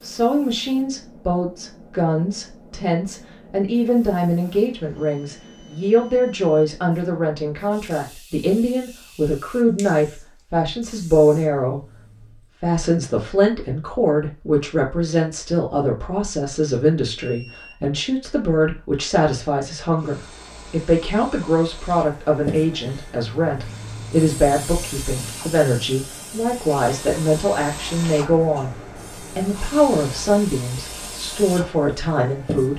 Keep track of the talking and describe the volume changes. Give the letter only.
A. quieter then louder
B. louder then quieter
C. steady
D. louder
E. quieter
C.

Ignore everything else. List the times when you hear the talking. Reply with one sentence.
You can hear the talking from 0.0 to 11.8 s, from 12.6 to 28.8 s and from 29.4 to 32.7 s.